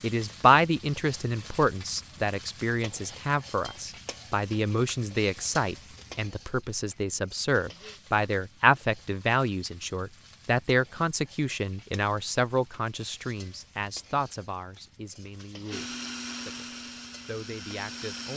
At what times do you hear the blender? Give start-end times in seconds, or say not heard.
15.7-18.3.